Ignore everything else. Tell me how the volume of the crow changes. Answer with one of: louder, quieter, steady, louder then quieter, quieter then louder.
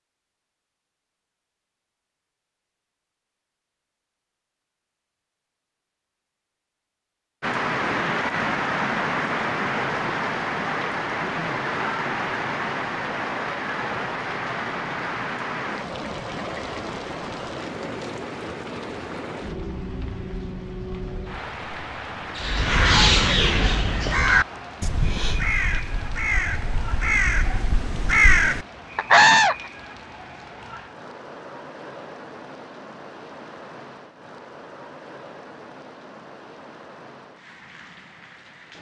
quieter then louder.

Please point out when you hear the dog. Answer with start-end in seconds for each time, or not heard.
not heard.